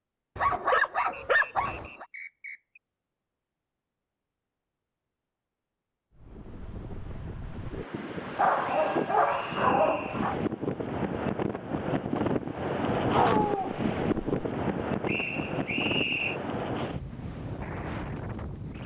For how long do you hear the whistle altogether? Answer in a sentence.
The whistle can be heard for 5 seconds in total.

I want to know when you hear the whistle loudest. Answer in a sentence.
The loudest moment of the whistle is at 16 seconds.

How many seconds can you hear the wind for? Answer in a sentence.
The wind can be heard for 13 seconds in total.